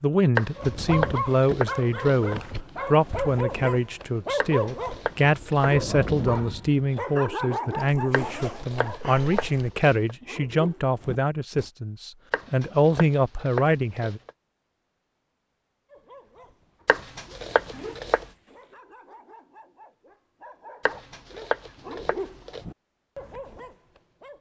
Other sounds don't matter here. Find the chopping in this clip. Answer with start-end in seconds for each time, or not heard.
0.3-2.4, 4.3-6.4, 8.1-10.2, 12.3-14.3, 16.9-18.2, 20.9-22.6.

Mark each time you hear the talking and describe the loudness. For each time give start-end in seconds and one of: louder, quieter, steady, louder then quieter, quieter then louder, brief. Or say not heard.
0.0-14.2 steady.